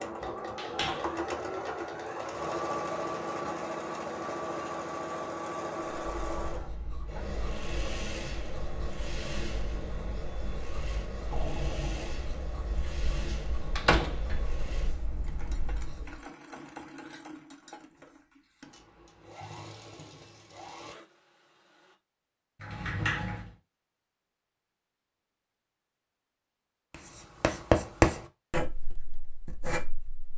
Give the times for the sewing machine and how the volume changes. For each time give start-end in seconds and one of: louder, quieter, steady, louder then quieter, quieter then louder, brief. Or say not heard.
0.0-21.9 quieter.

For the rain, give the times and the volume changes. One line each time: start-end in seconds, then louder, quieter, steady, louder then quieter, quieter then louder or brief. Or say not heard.
not heard.